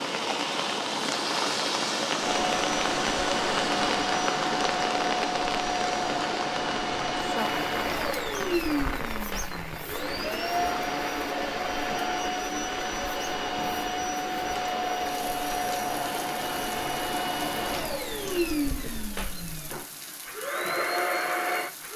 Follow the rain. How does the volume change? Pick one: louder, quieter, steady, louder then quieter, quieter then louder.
quieter.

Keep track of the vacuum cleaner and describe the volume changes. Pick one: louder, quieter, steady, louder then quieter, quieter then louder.
steady.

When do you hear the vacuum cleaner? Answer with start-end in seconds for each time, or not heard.
2.2-21.9.